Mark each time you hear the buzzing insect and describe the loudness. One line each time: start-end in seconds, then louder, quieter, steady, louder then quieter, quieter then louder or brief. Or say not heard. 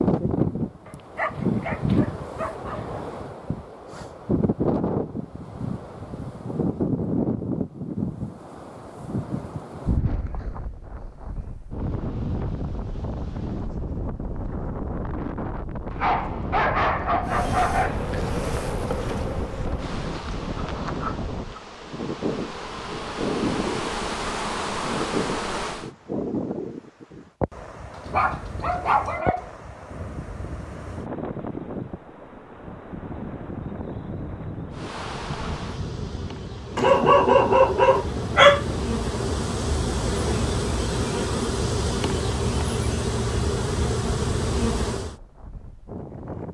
17.2-25.9 quieter then louder
34.7-45.1 louder.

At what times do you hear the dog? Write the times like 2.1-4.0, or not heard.
0.8-3.0, 15.9-18.1, 28.1-29.4, 36.8-38.6.